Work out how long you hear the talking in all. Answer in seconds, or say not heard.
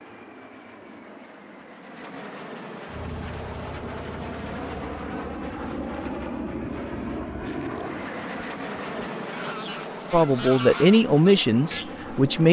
2 s.